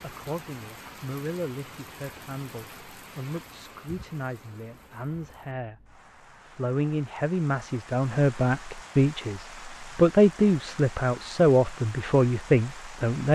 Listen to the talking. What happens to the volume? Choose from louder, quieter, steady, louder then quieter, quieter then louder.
louder.